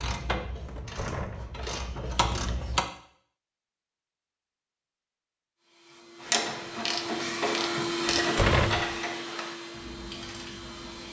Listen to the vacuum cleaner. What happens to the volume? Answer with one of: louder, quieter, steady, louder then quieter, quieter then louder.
louder then quieter.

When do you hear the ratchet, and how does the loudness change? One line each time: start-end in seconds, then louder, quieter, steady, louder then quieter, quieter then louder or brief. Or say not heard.
0.0-2.9 brief
6.2-11.0 quieter.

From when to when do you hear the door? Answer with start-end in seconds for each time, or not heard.
0.7-1.6, 8.1-8.9.